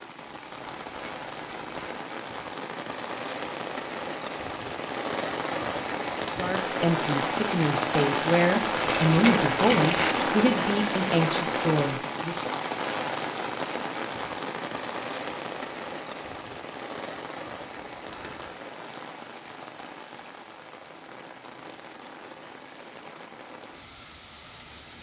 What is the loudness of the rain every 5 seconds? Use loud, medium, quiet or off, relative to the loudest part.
medium, loud, loud, medium, quiet.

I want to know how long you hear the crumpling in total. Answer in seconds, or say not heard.
4 s.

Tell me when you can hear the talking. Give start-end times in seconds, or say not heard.
6.3-12.5.